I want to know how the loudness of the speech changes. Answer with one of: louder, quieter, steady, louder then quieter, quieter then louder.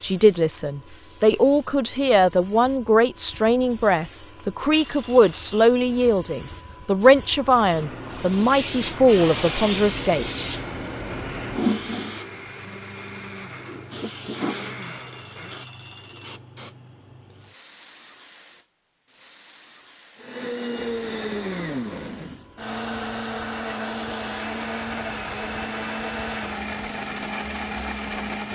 steady.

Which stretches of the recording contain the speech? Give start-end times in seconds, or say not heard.
0.0-10.4.